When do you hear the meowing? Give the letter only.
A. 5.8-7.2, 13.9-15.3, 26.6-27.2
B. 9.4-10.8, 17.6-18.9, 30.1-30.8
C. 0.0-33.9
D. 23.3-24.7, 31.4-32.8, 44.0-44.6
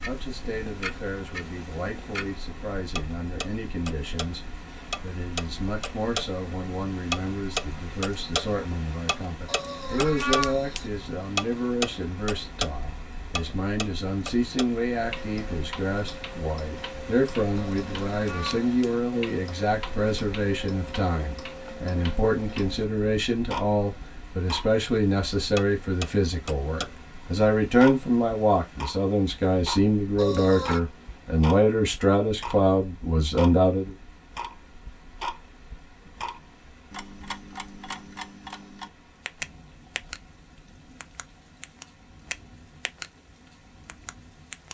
B.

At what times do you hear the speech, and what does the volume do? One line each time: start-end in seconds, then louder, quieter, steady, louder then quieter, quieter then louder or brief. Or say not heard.
0.0-33.9 louder.